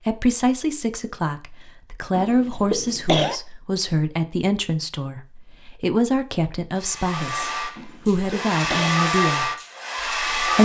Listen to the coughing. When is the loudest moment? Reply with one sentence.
The volume of the coughing peaks at 3 seconds.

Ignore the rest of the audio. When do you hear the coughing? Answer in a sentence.
You can hear the coughing from 2.1 to 3.4 s and from 7.8 to 9.0 s.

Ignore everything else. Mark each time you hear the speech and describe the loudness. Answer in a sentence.
You can hear the speech from 0.1 to 10.6 s, at a steady volume.